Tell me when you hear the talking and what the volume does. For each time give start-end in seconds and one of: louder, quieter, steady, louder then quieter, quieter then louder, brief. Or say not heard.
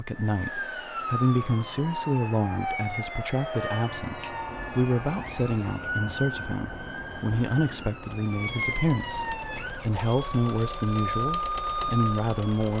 0.0-12.7 steady.